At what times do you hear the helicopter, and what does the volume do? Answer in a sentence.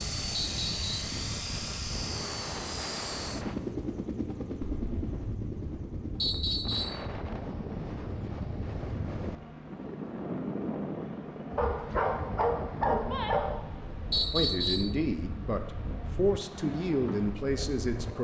You can hear the helicopter from 0.0 to 18.1 s, getting quieter.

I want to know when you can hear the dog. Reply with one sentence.
The dog can be heard from 11.6 to 13.6 s.